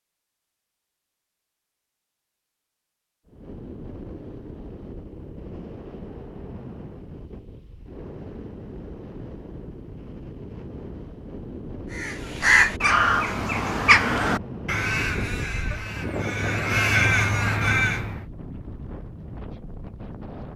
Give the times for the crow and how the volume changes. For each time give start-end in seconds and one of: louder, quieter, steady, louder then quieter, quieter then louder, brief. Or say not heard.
11.9-18.2 quieter then louder.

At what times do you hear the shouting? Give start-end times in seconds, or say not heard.
not heard.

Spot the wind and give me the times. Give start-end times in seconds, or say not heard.
3.2-20.5.